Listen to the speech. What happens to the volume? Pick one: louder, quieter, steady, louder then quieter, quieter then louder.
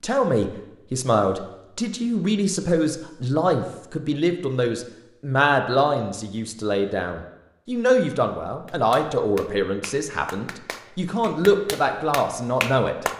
steady.